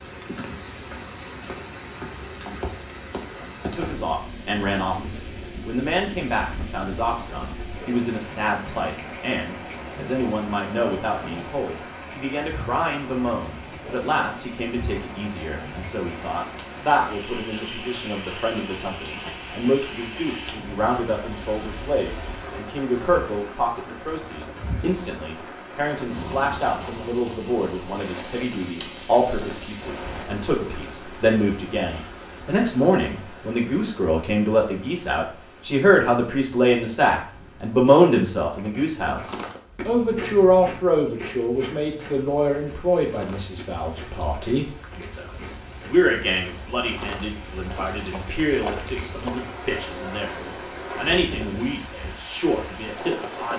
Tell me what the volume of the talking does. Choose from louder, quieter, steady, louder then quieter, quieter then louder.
louder then quieter.